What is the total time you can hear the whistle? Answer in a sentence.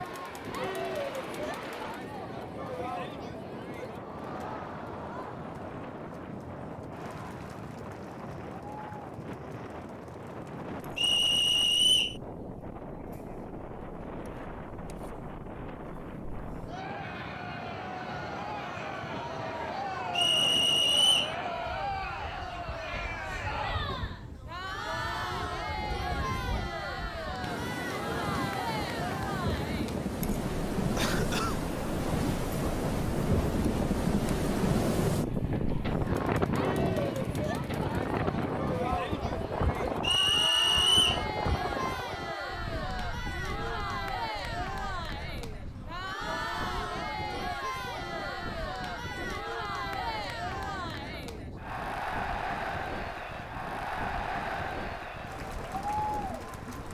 You can hear the whistle for 4 seconds altogether.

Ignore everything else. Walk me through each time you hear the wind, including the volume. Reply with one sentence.
The wind can be heard from 0.0 to 56.8 s, getting louder then quieter.